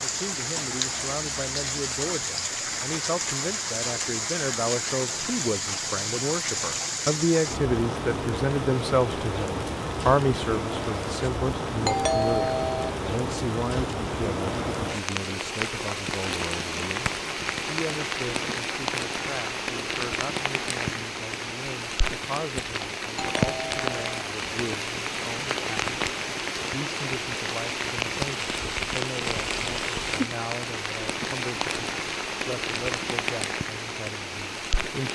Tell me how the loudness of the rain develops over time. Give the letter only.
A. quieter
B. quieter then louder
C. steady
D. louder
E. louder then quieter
C.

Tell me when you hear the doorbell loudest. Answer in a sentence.
The volume of the doorbell peaks at 12 seconds.